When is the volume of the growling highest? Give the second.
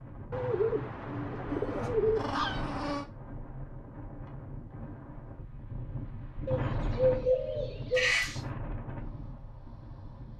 8 s.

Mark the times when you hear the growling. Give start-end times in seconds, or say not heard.
1.4-3.0, 8.0-8.4.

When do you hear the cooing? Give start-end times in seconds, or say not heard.
0.3-3.0, 6.5-8.2.